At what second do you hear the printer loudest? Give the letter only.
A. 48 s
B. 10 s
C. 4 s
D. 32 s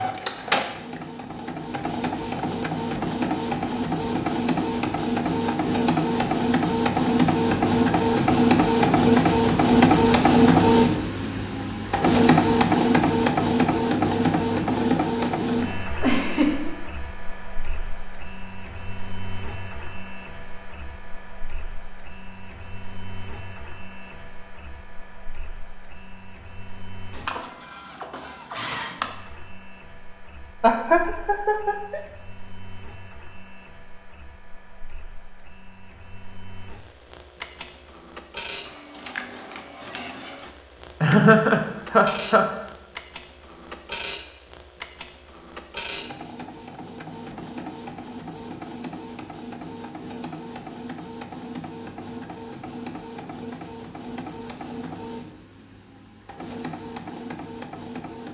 B.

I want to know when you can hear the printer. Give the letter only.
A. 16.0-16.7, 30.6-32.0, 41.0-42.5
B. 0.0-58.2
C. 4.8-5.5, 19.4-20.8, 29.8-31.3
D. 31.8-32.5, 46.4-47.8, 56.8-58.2
B.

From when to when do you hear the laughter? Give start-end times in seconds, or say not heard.
16.0-16.7, 30.6-32.0, 41.0-42.5.